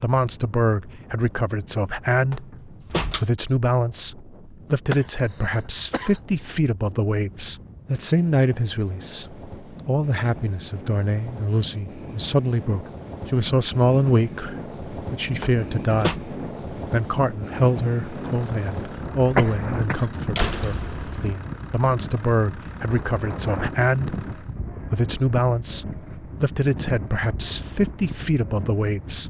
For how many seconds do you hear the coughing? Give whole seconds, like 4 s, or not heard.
2 s.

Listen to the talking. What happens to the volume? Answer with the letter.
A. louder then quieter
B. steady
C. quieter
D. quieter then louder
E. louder
B.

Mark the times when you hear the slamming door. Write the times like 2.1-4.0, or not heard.
2.3-3.2, 15.4-16.2, 20.0-21.3.